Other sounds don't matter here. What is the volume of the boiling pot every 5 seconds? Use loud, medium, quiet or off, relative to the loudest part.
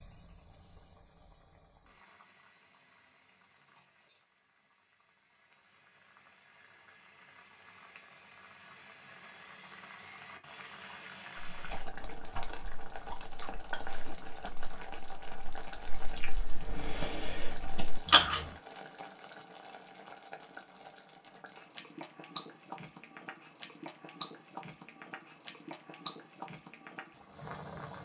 quiet, medium, loud, loud, loud, loud.